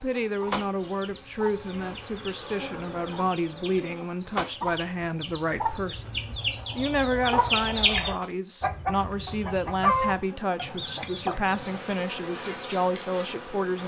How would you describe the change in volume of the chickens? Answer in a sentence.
The loudness of the chickens goes up.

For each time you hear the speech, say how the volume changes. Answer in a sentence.
You can hear the speech from 0.0 to 13.8 s, at a steady volume.